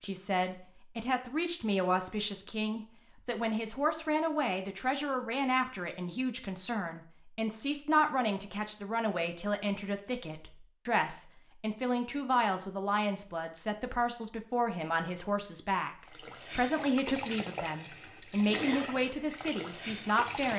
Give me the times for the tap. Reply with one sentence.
The tap can be heard from 16.1 to 20.5 s.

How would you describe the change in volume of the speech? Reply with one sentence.
The loudness of the speech stays about the same.